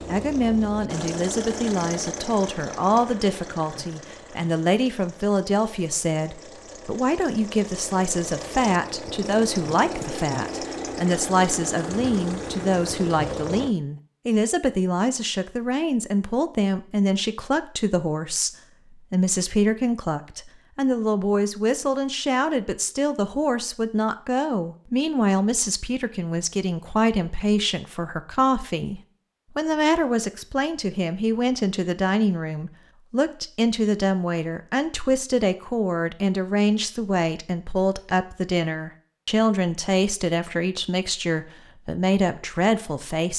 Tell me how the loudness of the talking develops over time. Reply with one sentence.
The loudness of the talking stays about the same.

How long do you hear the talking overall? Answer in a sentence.
The talking can be heard for 43 seconds in total.